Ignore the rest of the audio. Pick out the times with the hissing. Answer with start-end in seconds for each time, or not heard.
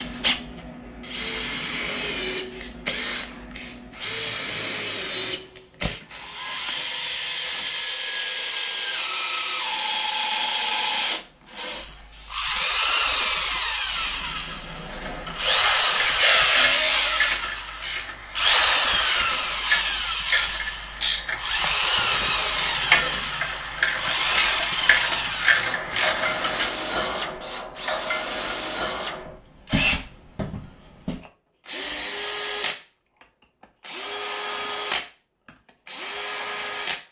0.0-17.4.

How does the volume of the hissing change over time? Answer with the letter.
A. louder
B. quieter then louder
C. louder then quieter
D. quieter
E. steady
A.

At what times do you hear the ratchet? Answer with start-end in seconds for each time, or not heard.
14.8-26.7.